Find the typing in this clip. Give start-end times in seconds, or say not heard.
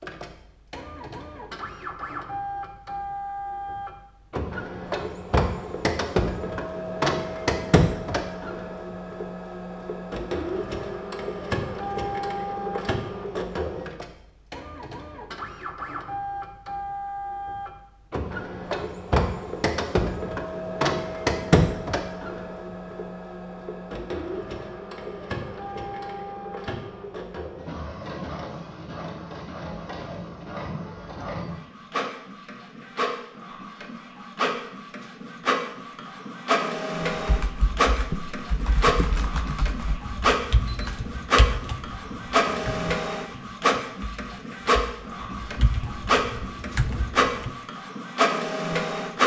37.1-47.5.